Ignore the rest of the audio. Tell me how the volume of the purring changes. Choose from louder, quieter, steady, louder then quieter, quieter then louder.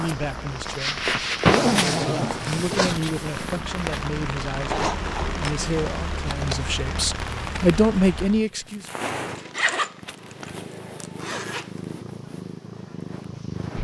quieter.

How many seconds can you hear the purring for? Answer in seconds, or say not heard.
14 s.